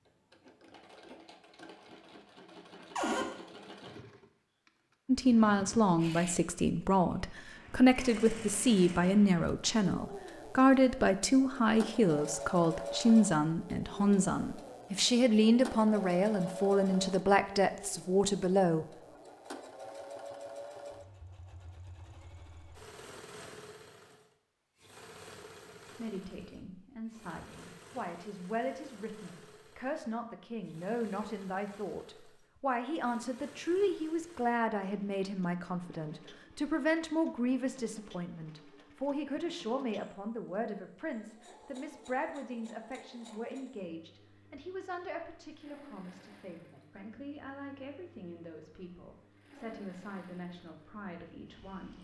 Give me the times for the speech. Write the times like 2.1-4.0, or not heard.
5.0-18.9, 25.9-52.0.